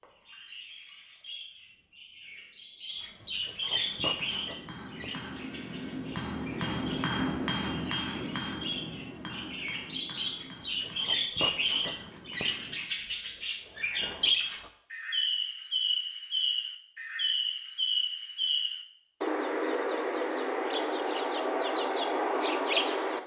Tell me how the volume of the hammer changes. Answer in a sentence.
The loudness of the hammer goes up, then down.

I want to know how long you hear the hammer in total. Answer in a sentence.
The hammer can be heard for 9 seconds in total.